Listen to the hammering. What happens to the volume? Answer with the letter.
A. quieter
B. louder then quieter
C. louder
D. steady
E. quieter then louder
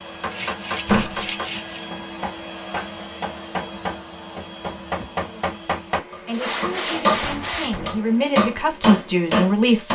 C.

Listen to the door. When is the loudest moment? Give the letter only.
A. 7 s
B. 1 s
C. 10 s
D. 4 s
B.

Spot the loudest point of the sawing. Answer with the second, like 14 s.
7 s.